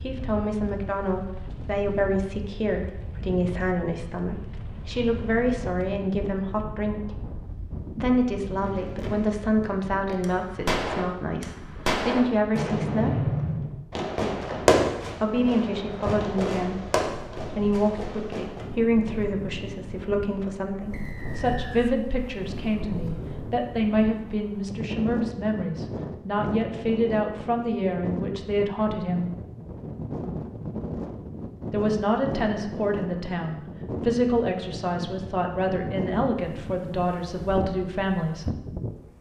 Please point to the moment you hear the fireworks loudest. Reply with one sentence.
The loudest moment of the fireworks is at 15 seconds.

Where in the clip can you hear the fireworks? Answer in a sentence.
You can hear the fireworks from 8.6 to 18.7 s.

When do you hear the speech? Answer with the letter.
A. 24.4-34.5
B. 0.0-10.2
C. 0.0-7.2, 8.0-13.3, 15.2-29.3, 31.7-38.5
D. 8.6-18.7
C.